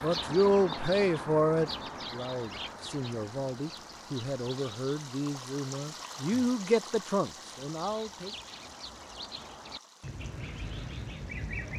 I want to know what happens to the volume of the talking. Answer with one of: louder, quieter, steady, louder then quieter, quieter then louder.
quieter then louder.